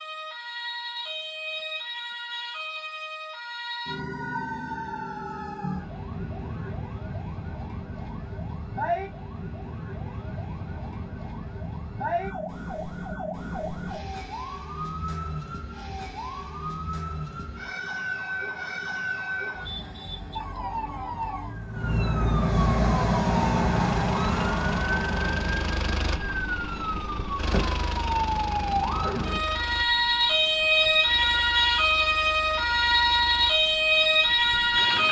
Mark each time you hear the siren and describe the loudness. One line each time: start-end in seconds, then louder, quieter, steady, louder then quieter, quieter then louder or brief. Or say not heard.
0.0-35.0 louder.